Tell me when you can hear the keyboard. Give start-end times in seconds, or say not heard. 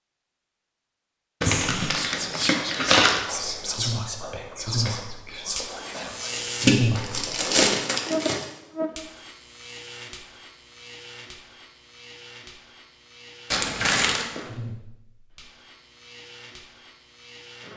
not heard.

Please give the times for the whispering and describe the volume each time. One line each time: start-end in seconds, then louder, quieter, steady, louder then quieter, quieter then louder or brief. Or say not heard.
1.4-7.2 quieter.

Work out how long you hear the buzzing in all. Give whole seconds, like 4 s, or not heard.
14 s.